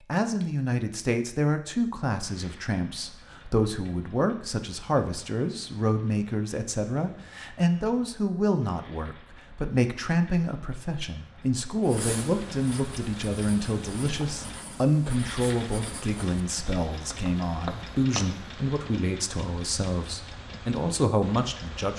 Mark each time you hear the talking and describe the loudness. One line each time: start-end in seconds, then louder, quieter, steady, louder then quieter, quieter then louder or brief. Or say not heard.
0.1-21.9 steady.